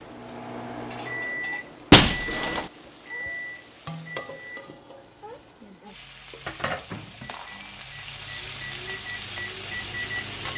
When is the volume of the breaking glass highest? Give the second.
2 s.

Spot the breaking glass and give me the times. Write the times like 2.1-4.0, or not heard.
1.9-2.6, 7.2-7.8.